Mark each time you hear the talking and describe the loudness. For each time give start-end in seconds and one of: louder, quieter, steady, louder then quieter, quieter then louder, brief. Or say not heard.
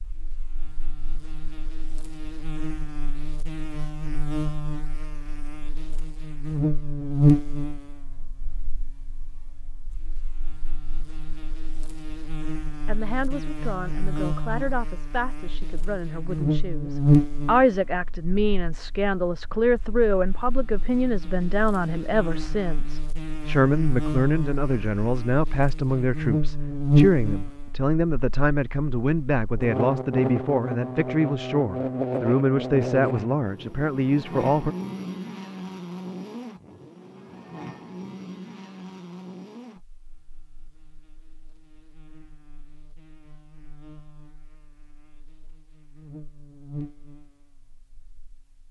12.8-34.8 louder.